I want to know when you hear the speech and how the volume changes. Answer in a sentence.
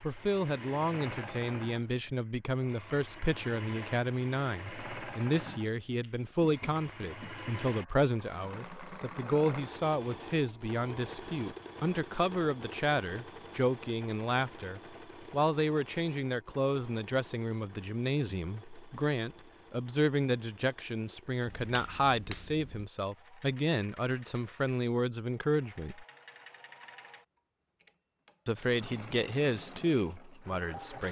You can hear the speech from 0.0 to 26.1 s, at a steady volume; and briefly from 28.4 to 31.0 s.